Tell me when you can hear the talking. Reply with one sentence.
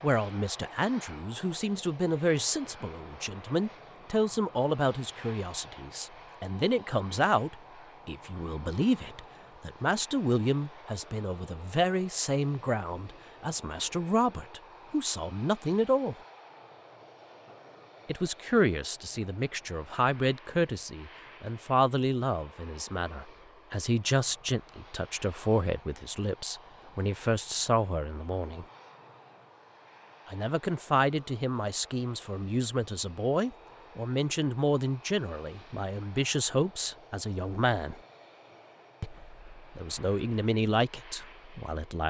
The talking can be heard from 0.0 to 16.1 s, from 18.1 to 28.6 s, from 30.2 to 38.0 s and from 39.0 to 42.0 s.